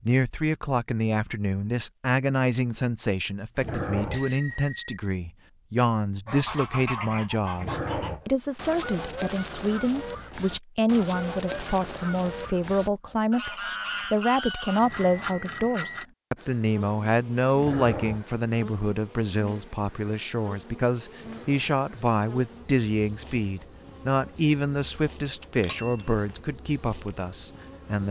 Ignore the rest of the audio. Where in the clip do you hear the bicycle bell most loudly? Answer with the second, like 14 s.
16 s.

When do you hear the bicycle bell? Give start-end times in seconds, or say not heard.
4.1-5.0, 14.8-16.1, 25.6-26.4.